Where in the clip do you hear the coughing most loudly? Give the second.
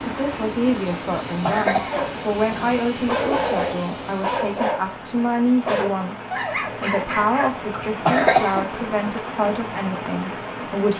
8 s.